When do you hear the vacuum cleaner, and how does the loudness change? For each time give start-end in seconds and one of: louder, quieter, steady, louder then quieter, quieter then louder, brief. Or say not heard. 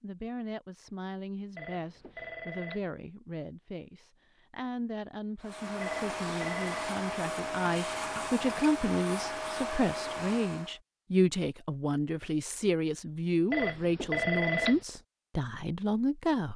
5.4-10.8 steady.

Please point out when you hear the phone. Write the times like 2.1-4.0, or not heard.
1.6-2.9, 5.8-6.8, 13.5-14.8.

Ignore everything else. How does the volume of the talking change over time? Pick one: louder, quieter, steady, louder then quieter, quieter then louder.
louder.